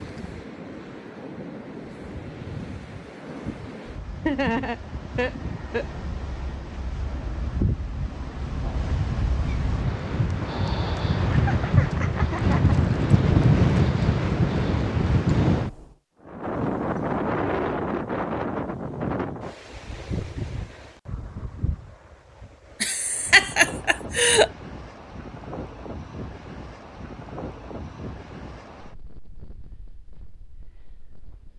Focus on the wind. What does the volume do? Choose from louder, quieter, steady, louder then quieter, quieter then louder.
louder then quieter.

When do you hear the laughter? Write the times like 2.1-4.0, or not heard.
4.2-5.8, 11.3-12.8, 22.8-24.5.